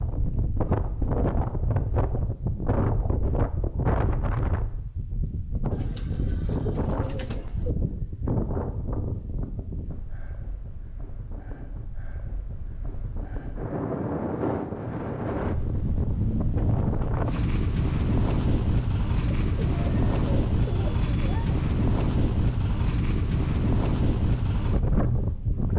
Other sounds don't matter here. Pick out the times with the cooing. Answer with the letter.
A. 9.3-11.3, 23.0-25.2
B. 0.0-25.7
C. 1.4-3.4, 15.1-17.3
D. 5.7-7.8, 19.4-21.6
D.